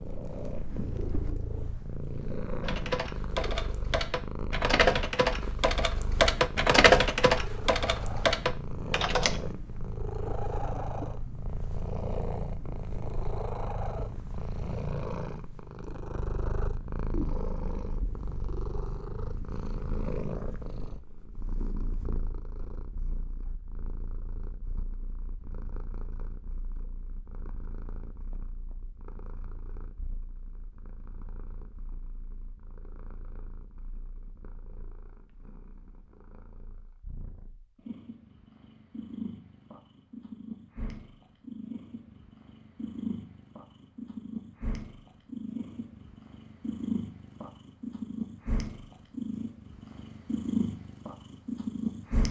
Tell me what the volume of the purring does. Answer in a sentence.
The volume of the purring goes down, then up.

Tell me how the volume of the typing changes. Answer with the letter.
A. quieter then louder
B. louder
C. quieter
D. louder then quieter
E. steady
D.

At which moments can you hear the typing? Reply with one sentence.
You can hear the typing from 2.6 to 9.4 s.